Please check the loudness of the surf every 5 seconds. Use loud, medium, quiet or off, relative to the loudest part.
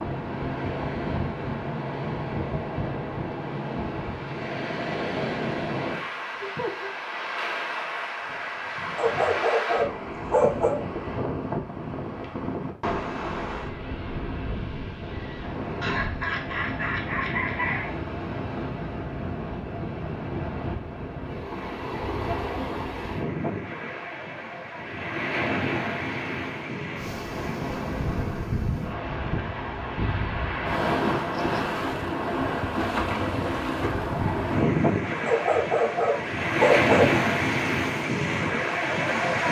medium, medium, medium, medium, medium, medium, loud, loud.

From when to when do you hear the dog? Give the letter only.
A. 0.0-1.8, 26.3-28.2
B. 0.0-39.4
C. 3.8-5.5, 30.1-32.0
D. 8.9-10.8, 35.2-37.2
D.